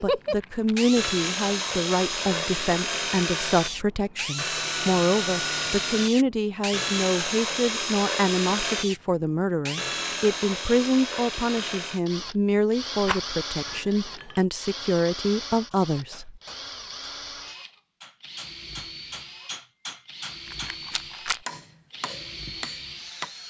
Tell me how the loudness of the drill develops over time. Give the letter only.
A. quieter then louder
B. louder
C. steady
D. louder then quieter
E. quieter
E.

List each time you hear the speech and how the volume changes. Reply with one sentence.
The speech can be heard from 0.0 to 16.4 s, at a steady volume.